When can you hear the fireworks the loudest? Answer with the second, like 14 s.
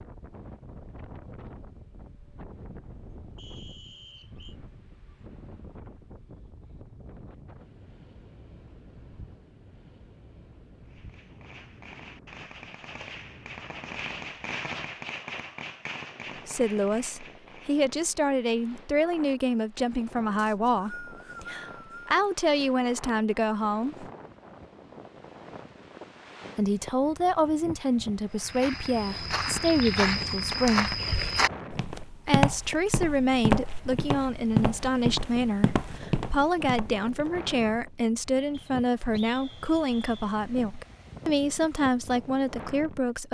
15 s.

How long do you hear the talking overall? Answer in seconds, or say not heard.
23 s.